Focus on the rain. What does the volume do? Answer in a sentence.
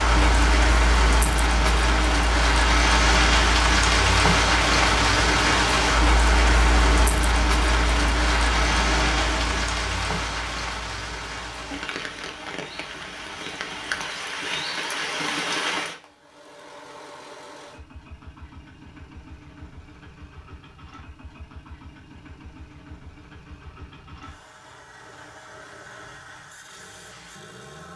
The volume of the rain goes down.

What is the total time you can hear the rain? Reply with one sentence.
You can hear the rain for 16 seconds altogether.